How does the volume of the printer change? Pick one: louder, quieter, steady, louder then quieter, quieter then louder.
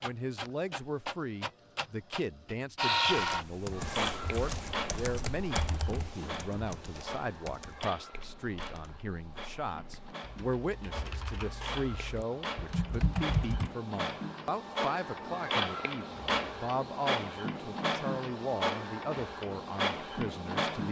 quieter then louder.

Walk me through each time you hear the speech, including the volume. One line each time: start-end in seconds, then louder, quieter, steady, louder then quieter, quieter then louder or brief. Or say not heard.
0.0-20.8 steady.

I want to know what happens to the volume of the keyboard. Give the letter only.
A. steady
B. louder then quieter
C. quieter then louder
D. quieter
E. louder
C.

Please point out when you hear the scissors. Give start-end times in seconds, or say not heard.
not heard.